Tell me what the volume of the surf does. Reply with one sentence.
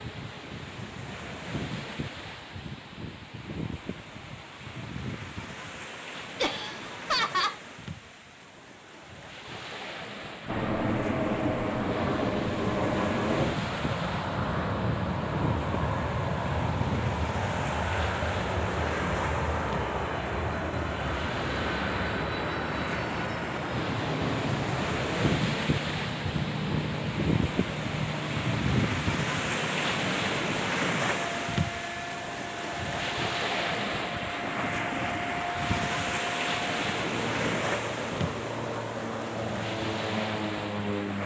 The loudness of the surf goes up.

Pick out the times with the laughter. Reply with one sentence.
The laughter can be heard from 6.4 to 7.6 s.